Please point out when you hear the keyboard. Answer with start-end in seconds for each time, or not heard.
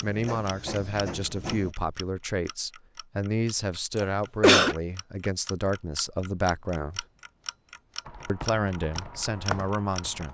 8.1-10.3.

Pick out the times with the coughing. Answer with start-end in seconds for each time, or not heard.
4.0-4.8.